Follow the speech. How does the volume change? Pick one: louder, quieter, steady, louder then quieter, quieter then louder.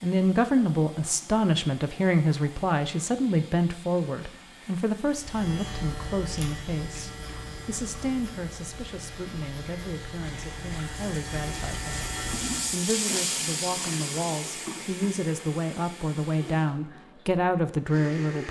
quieter then louder.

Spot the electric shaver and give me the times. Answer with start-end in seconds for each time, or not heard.
5.0-12.8.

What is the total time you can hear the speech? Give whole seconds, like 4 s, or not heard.
18 s.